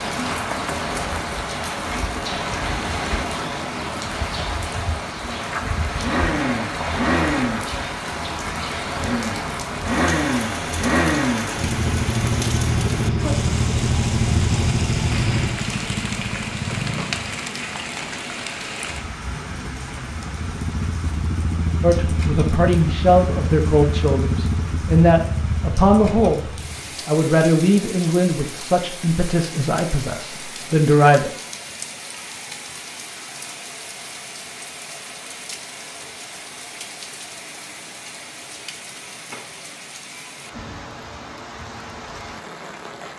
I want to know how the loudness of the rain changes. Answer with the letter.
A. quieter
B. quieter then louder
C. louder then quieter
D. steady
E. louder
A.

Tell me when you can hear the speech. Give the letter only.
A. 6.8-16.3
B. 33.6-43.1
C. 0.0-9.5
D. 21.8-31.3
D.